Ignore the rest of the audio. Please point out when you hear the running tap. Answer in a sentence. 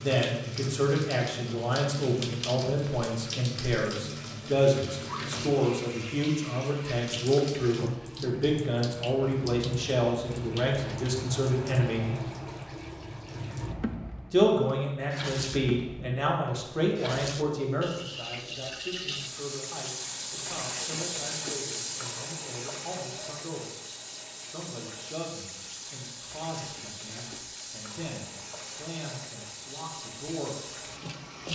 The running tap can be heard from 0.0 to 31.5 s.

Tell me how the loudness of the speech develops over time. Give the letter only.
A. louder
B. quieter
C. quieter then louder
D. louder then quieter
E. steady
B.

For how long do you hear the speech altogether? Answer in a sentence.
You can hear the speech for 28 seconds altogether.